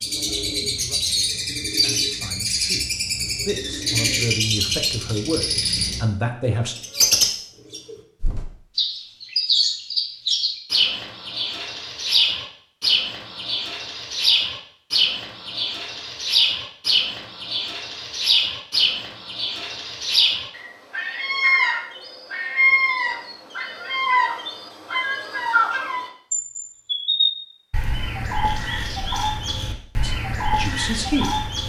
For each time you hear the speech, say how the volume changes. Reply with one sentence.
The speech can be heard from 0.1 to 6.8 s, getting louder; and briefly from 30.0 to 31.5 s.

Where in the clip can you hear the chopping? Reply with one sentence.
The chopping can't be heard in this clip.